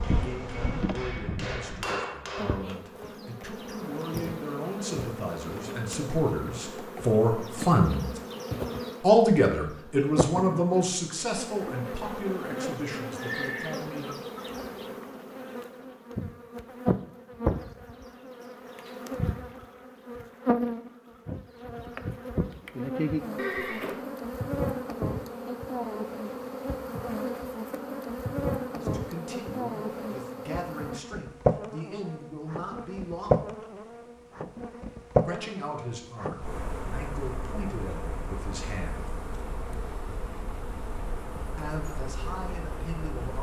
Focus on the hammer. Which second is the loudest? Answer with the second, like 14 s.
2 s.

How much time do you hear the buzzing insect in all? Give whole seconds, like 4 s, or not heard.
43 s.